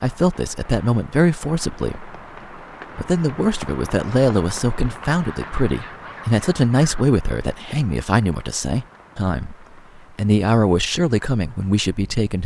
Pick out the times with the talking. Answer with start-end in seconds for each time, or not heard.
0.0-2.1, 3.0-12.4.